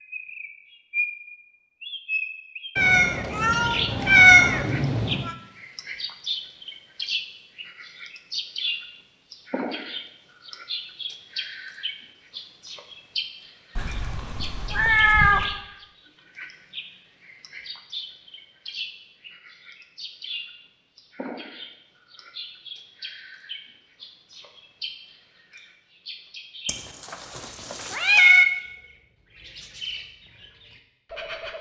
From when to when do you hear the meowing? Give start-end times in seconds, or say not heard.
2.8-5.3, 13.8-15.6, 26.6-28.4.